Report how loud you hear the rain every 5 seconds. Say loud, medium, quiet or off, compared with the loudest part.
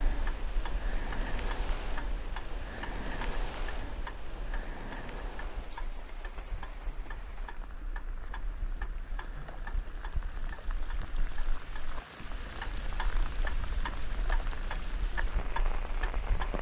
loud, medium, loud, loud.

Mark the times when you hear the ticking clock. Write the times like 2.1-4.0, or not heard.
0.1-16.5.